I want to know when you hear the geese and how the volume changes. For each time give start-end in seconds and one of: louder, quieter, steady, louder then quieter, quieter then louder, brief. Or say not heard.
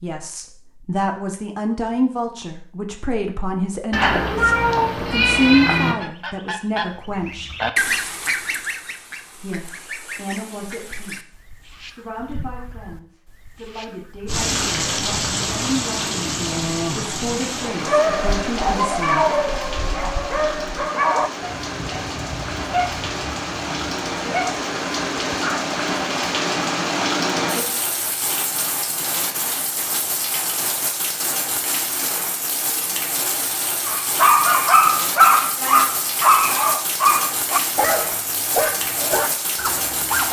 6.0-14.5 quieter.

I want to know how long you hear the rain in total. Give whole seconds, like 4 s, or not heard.
26 s.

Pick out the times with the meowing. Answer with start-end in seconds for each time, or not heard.
3.9-6.0.